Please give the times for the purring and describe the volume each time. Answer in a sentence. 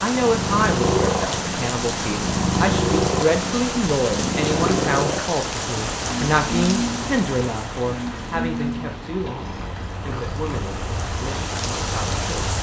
You can hear the purring from 0.1 to 12.5 s, getting quieter.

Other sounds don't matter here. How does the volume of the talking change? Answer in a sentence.
The volume of the talking goes down.